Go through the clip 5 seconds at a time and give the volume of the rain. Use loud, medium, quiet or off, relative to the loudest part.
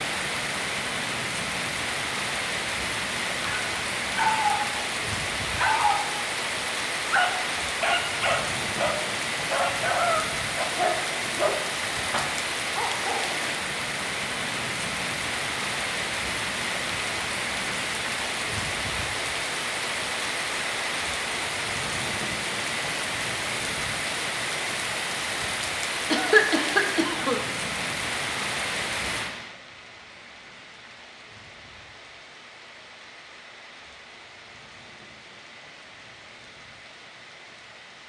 loud, loud, loud, loud, loud, loud, quiet, quiet.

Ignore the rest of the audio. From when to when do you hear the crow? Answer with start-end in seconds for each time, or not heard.
not heard.